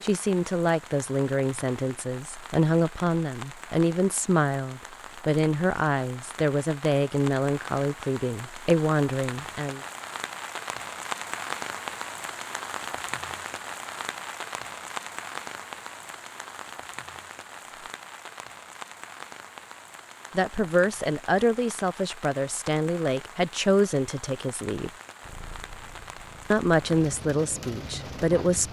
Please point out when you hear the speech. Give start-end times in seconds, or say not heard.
0.0-9.8, 20.4-24.9, 26.5-28.6.